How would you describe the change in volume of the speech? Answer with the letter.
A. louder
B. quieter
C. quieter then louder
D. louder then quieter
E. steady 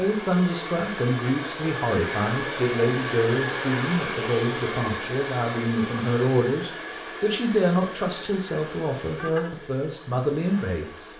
E.